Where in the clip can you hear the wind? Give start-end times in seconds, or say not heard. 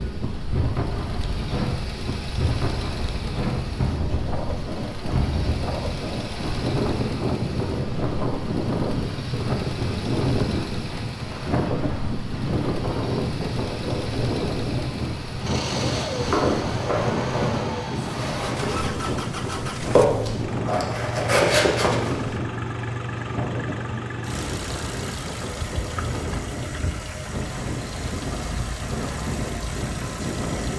0.0-30.7.